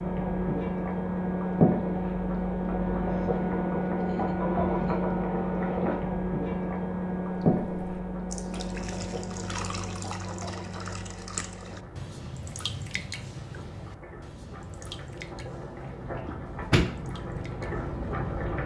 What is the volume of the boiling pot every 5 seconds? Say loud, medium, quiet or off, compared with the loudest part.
loud, loud, quiet, medium.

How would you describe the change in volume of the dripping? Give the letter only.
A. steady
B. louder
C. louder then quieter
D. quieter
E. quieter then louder
D.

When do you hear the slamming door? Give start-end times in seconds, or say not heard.
16.2-16.9.